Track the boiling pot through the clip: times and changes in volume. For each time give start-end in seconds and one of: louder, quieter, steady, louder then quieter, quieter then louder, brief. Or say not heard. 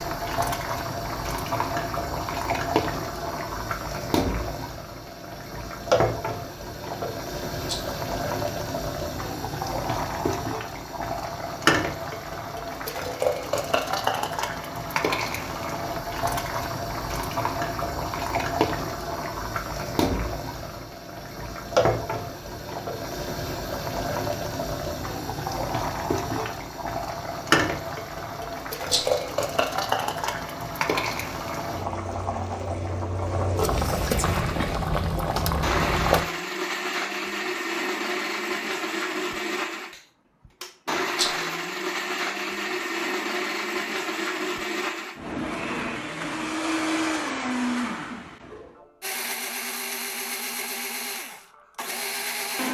0.0-36.2 steady.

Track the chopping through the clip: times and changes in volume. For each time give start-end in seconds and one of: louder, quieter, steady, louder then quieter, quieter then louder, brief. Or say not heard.
not heard.